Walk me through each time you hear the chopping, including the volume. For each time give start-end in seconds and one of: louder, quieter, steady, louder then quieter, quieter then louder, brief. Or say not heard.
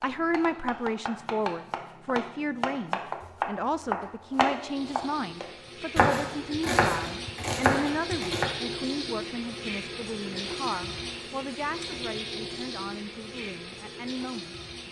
0.0-8.6 louder.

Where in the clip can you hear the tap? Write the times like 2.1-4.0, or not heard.
4.5-14.8.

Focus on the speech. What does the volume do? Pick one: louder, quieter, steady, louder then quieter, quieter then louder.
quieter.